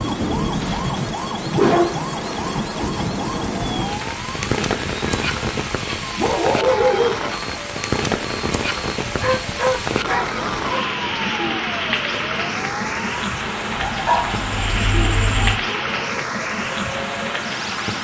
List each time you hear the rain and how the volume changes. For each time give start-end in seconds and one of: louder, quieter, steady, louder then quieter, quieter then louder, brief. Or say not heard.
0.0-18.0 steady.